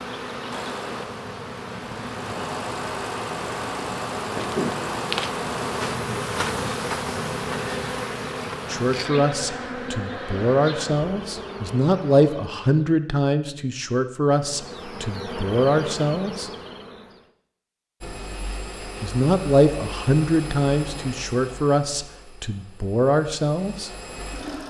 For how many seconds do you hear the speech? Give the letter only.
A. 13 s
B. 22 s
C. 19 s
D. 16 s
A.